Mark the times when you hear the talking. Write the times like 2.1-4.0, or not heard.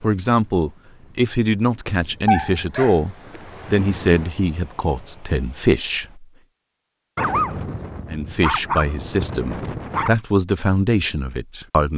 0.0-6.2, 8.1-11.9.